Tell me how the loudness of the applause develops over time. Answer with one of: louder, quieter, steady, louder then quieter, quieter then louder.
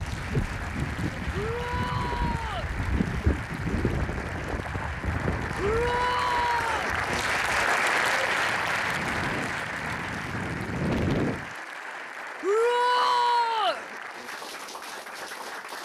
louder then quieter.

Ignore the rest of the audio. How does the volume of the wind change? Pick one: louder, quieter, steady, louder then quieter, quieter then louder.
quieter then louder.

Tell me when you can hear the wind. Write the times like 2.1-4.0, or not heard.
0.0-11.6.